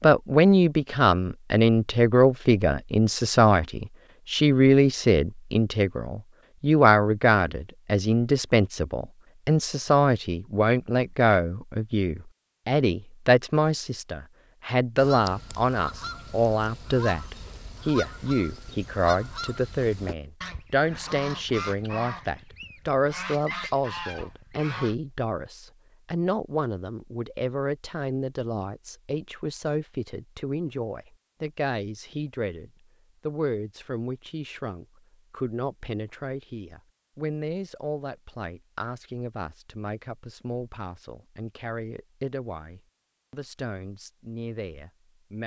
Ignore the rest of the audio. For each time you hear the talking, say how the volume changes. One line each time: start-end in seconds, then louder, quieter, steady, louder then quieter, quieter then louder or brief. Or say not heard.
0.0-45.4 quieter.